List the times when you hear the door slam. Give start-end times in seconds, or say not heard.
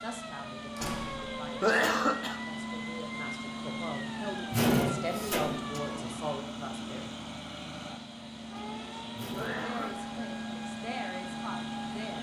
0.8-1.3, 4.5-5.8, 9.2-9.7.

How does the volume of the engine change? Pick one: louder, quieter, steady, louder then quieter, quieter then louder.
steady.